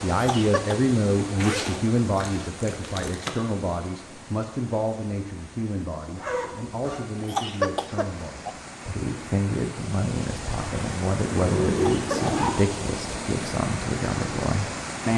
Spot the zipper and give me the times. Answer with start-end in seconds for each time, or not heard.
1.4-3.3, 6.1-7.1, 11.2-12.8.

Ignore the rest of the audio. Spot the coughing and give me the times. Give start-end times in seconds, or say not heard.
0.1-0.8, 7.2-8.6, 11.7-12.3.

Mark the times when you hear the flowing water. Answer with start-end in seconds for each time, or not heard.
0.0-15.1.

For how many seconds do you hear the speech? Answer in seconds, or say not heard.
15 s.